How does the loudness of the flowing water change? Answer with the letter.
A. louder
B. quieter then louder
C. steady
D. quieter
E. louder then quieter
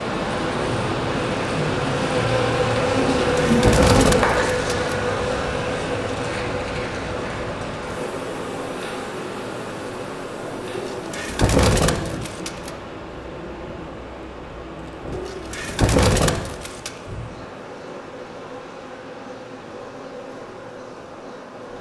D.